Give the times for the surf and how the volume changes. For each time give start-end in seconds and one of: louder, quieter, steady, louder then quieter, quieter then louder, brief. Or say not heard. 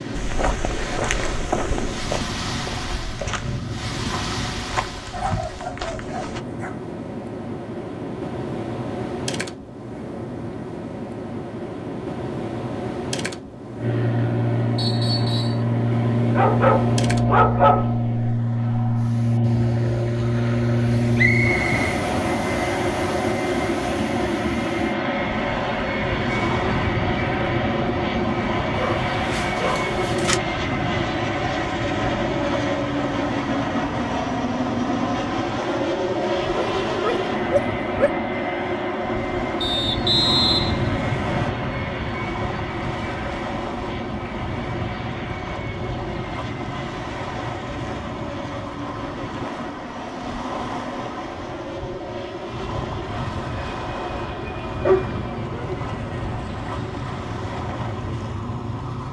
0.0-59.0 steady.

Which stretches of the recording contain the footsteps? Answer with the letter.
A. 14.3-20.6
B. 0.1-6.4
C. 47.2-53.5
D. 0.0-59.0
B.